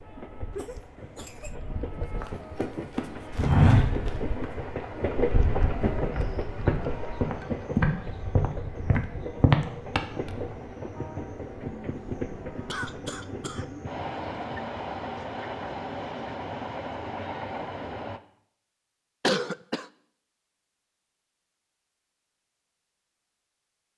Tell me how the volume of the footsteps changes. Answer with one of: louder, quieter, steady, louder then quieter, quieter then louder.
quieter then louder.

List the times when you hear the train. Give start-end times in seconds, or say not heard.
0.0-18.2.